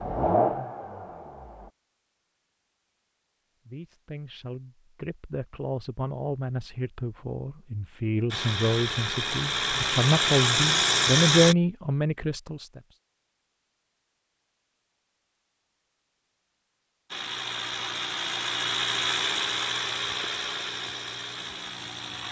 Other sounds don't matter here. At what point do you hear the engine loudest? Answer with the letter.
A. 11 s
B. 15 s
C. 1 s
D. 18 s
A.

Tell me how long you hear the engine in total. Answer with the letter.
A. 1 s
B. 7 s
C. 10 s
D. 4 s
C.